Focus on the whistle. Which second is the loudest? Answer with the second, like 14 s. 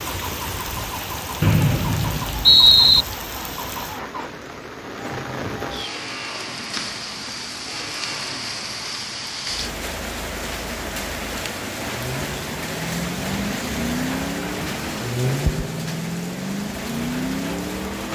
3 s.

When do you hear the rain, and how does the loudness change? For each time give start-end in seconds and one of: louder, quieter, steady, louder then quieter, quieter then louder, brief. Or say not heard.
0.0-18.0 steady.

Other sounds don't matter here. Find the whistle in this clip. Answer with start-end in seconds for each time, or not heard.
1.4-3.0.